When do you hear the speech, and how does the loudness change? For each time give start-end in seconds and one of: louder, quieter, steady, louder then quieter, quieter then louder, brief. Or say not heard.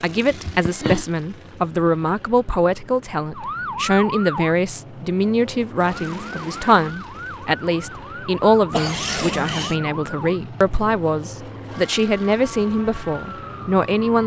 0.0-14.2 steady.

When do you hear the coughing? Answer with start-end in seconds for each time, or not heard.
0.2-1.1, 8.7-9.8.